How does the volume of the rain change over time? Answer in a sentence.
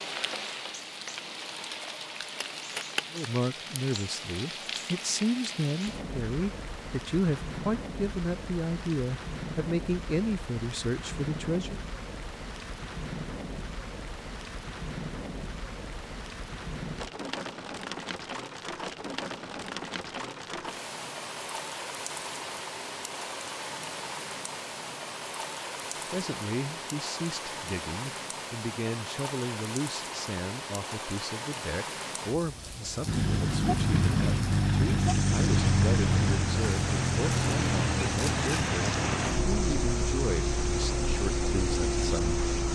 The volume of the rain stays about the same.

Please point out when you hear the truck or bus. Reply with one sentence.
The truck or bus can be heard from 33.0 to 42.7 s.